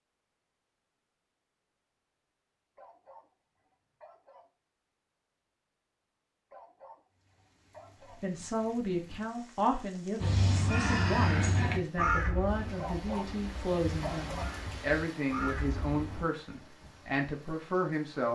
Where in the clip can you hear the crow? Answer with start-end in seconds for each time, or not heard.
10.2-16.2.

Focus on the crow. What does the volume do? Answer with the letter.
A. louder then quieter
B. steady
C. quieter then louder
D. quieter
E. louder
C.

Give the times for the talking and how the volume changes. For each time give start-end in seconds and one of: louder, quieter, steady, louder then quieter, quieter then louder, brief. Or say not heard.
8.2-18.3 steady.